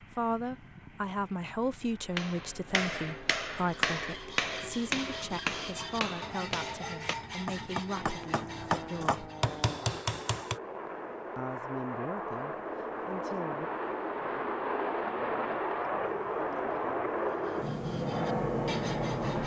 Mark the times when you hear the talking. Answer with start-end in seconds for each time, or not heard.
0.0-9.2, 11.3-13.7.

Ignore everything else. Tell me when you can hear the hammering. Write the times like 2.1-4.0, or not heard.
2.1-10.6.